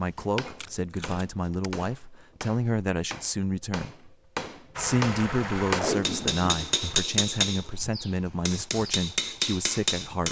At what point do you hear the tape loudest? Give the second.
6 s.